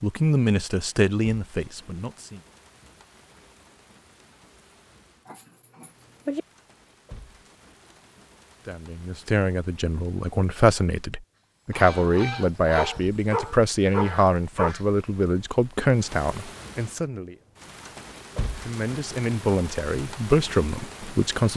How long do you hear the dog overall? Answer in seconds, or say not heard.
3 s.